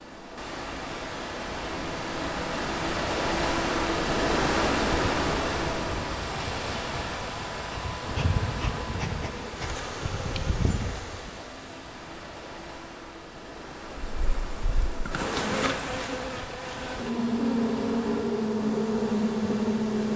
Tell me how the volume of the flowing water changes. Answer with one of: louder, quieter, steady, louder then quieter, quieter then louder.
quieter.